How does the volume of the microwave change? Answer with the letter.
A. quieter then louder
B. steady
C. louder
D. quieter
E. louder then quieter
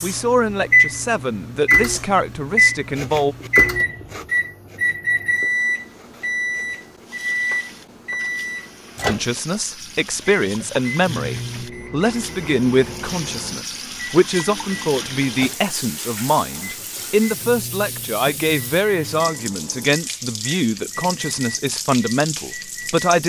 D.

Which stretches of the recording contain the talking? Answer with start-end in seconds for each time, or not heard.
0.0-3.4, 9.1-23.2.